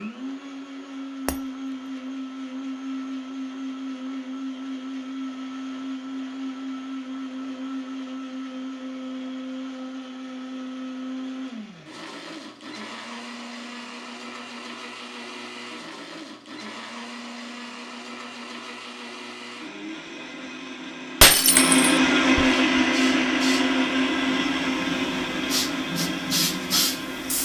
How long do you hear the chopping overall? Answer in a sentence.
The chopping can't be heard in this clip.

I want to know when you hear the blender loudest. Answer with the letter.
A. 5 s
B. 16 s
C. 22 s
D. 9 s
C.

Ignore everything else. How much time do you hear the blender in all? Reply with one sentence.
The blender can be heard for 27 seconds in total.